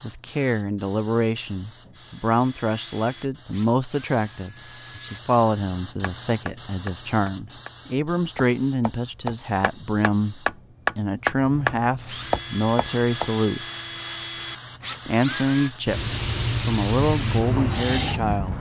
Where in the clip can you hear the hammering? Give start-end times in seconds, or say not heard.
6.0-13.3.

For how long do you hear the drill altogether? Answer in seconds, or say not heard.
7 s.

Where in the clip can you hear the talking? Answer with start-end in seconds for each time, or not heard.
0.0-13.7, 15.1-18.5.